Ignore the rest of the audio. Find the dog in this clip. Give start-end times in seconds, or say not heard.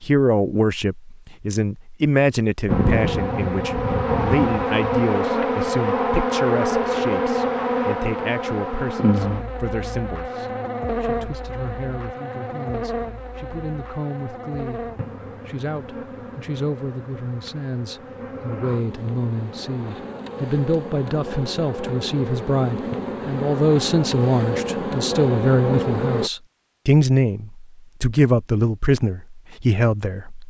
not heard.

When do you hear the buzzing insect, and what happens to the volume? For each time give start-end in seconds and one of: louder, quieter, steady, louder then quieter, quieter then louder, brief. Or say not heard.
2.6-26.3 quieter then louder.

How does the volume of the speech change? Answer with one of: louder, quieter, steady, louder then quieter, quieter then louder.
quieter then louder.